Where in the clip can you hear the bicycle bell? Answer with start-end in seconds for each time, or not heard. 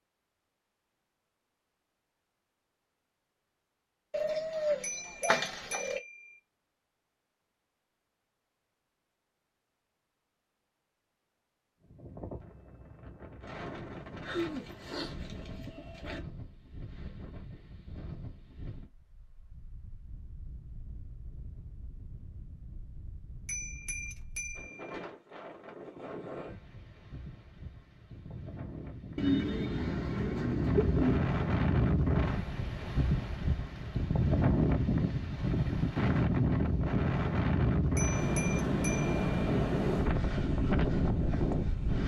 4.8-6.4, 23.4-25.1, 38.0-39.2.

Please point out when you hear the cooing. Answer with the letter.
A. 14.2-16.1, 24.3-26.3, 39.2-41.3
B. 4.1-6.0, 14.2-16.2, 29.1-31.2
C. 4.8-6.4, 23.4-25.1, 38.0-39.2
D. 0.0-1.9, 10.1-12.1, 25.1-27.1
B.